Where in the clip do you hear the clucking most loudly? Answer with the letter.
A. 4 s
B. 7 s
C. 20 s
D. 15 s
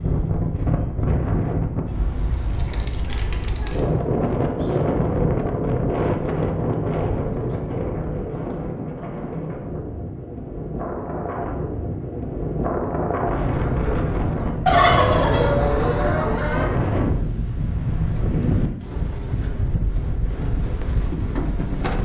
D.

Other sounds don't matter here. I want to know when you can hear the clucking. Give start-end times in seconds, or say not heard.
14.7-16.6.